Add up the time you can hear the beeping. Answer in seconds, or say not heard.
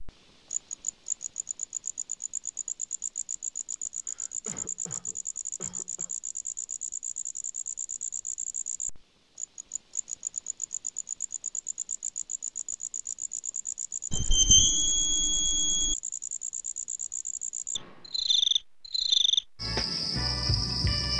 2 s.